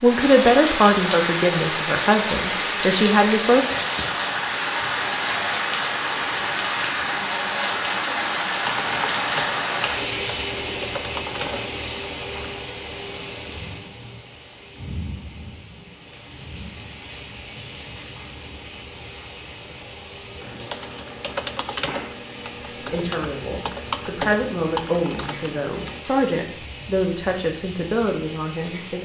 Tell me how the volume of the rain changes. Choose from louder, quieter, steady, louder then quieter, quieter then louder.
quieter.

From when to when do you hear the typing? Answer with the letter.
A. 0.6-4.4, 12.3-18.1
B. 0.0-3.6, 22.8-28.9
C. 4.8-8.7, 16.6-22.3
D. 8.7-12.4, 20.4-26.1
D.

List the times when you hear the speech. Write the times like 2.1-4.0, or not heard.
0.0-3.6, 22.8-28.9.